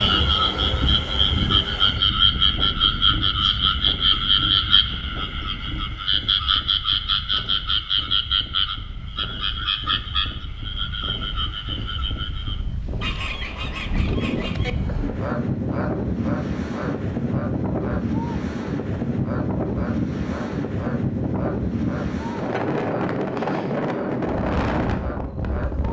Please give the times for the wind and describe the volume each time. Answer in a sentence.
You can hear the wind from 0.0 to 25.8 s, getting quieter then louder.